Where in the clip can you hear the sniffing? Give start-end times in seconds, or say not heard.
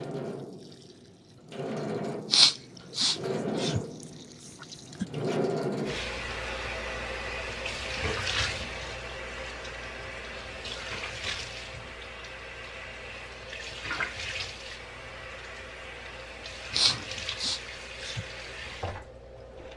2.3-3.9, 16.7-18.2.